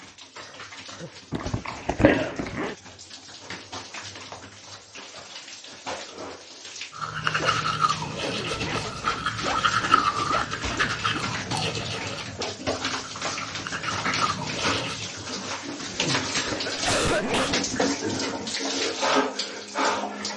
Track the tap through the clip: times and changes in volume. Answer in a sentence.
The tap can be heard from 0.0 to 20.3 s, getting louder.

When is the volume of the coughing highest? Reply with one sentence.
The volume of the coughing peaks at 17 seconds.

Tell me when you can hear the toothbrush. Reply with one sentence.
The toothbrush can be heard from 6.9 to 15.1 s.